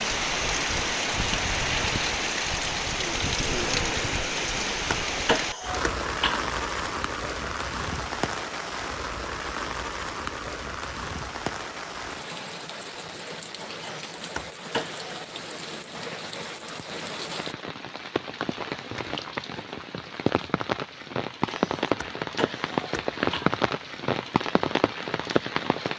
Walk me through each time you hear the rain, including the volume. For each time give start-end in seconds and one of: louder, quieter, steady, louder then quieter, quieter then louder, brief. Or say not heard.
0.0-25.9 quieter then louder.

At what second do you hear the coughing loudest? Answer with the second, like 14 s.
5 s.